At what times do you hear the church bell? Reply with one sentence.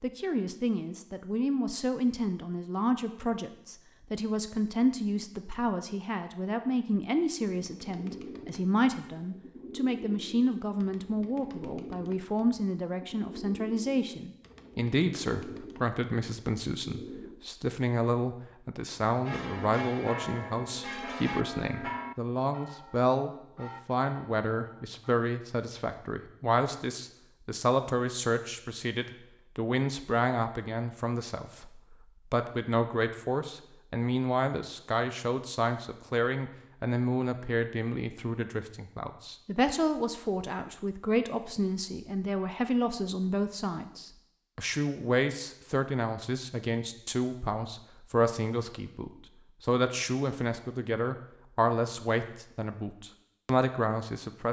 You can hear the church bell from 19.2 to 25.1 s.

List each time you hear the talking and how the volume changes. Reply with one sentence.
You can hear the talking from 0.0 to 54.4 s, at a steady volume.